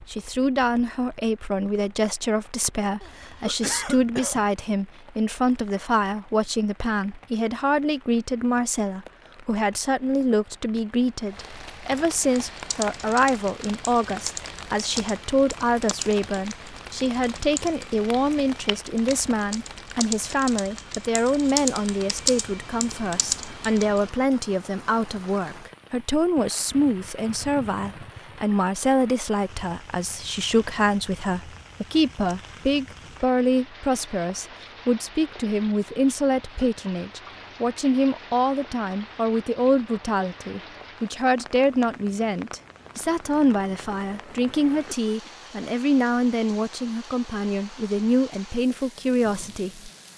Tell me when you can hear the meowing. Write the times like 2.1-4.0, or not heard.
not heard.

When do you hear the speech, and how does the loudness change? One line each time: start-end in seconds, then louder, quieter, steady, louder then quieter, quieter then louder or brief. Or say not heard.
0.1-49.9 steady.